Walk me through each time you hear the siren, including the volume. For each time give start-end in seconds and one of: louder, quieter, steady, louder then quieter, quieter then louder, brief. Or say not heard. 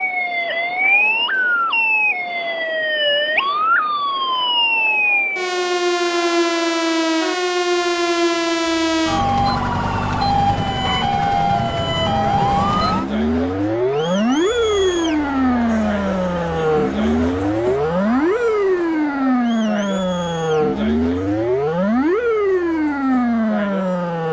0.0-24.2 steady.